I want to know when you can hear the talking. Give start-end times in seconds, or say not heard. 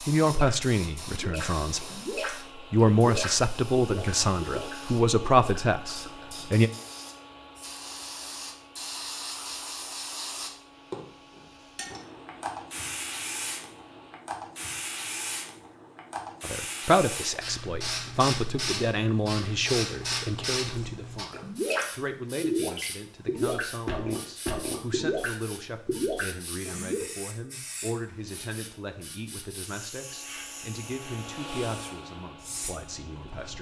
0.0-6.7, 16.4-33.5.